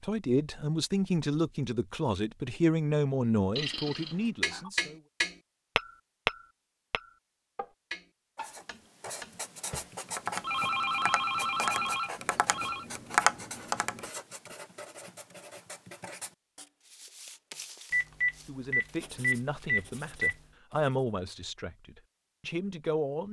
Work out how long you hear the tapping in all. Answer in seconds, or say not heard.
10 s.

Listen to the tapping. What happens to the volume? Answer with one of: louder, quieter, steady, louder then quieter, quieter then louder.
quieter then louder.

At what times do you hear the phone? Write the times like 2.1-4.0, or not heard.
3.5-4.7, 10.4-12.8, 17.9-20.4.